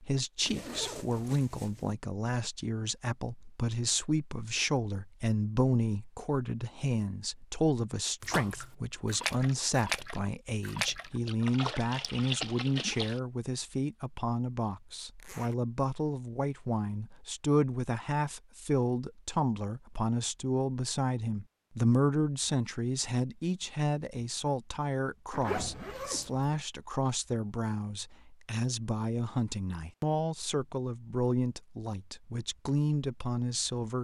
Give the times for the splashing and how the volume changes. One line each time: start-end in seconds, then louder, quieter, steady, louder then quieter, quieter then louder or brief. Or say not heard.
8.2-13.2 steady.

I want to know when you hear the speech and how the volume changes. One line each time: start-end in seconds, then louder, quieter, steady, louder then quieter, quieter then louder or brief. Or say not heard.
0.0-34.0 steady.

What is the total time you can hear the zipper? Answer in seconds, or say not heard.
3 s.